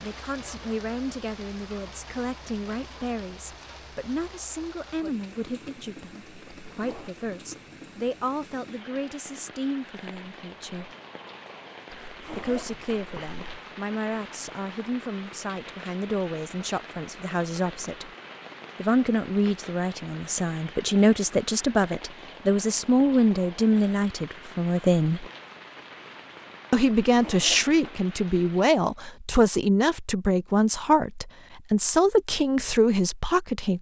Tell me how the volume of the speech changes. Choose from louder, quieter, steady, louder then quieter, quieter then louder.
louder.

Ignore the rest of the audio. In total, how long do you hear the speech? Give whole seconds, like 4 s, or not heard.
30 s.